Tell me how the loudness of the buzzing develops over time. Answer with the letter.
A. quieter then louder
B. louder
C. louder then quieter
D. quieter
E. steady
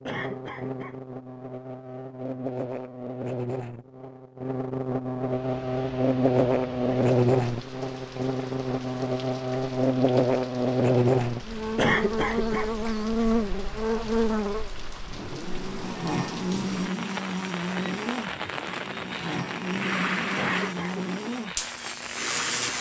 C.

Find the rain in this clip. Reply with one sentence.
You can hear the rain from 5.2 to 22.7 s.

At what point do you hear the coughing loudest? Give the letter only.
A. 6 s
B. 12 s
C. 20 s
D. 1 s
B.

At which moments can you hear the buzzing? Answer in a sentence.
You can hear the buzzing from 0.0 to 22.7 s.